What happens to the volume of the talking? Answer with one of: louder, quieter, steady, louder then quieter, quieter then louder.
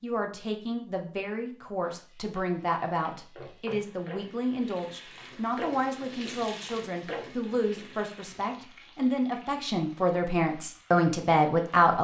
louder.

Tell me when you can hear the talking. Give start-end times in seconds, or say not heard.
0.0-11.9.